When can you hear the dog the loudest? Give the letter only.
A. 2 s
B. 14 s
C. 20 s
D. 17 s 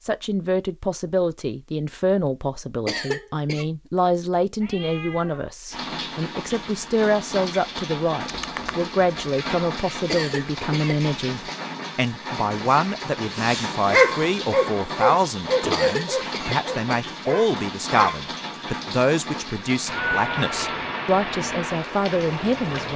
B.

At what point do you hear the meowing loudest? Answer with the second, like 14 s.
20 s.